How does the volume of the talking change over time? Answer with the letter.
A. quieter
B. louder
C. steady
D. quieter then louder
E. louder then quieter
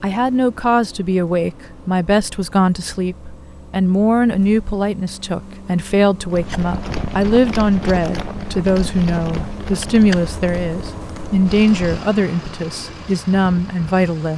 C.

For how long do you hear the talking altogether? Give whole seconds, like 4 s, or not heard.
14 s.